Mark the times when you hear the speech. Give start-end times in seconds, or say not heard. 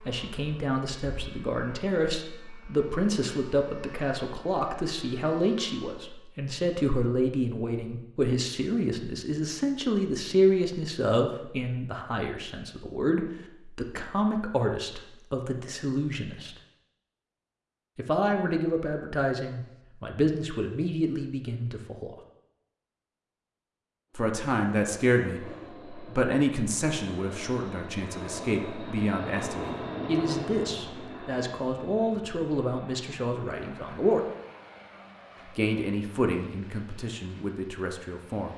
0.0-16.6, 17.9-22.1, 24.1-34.2, 35.5-38.5.